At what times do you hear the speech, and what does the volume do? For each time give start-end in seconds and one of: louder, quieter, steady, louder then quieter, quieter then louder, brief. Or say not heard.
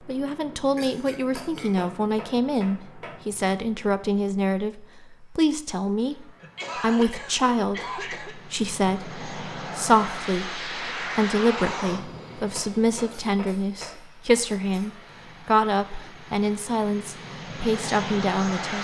0.1-18.7 steady.